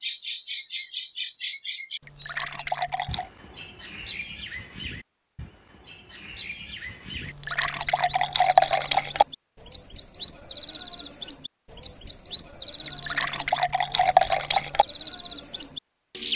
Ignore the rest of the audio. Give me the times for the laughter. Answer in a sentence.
You can't hear the laughter here.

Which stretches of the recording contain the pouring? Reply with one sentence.
The pouring can be heard from 2.0 to 3.3 s, from 7.2 to 9.2 s and from 12.8 to 14.8 s.